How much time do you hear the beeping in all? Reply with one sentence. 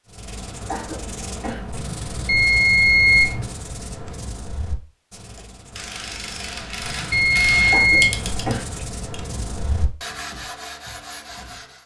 The beeping can be heard for 2 seconds in total.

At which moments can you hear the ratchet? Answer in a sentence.
The ratchet can be heard from 5.2 to 9.2 s.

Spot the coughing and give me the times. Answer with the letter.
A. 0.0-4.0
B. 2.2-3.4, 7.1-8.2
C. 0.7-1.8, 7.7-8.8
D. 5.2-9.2
C.